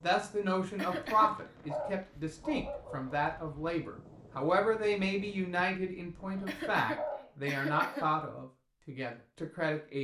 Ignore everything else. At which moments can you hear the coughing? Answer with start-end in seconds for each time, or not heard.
0.8-1.4, 6.5-8.1.